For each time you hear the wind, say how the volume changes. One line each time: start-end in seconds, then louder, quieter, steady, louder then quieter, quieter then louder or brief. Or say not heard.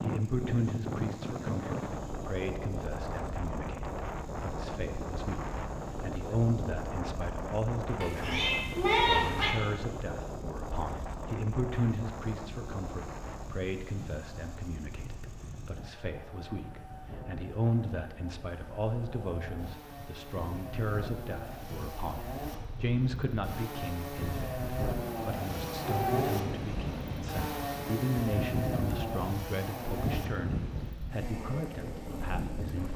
0.0-32.9 quieter then louder.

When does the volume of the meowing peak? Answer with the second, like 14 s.
9 s.